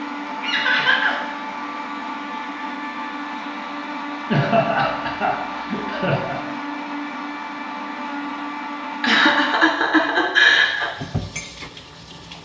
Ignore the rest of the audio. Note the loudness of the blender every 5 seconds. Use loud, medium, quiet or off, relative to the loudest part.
loud, loud, quiet.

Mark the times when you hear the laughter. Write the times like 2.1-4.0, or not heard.
0.4-1.2, 4.3-6.3, 9.0-10.9.